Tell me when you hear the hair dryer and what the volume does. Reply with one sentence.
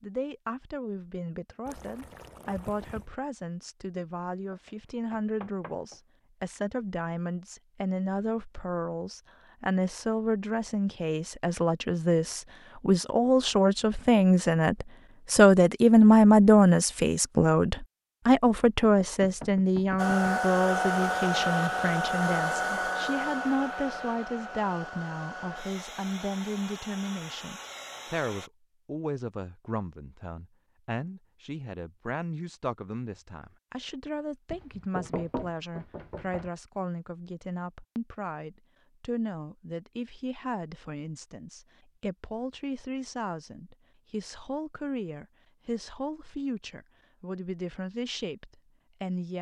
You can hear the hair dryer from 19.9 to 28.5 s, getting quieter.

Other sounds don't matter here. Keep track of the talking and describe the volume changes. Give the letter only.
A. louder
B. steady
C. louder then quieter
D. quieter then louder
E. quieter
C.